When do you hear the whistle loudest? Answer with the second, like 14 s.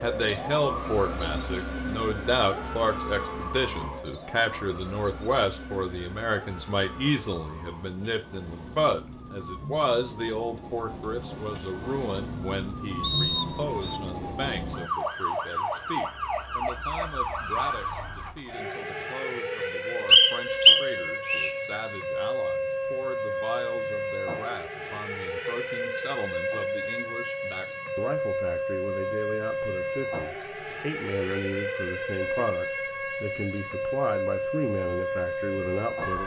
21 s.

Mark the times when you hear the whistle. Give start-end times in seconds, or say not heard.
13.0-14.0, 20.1-21.5.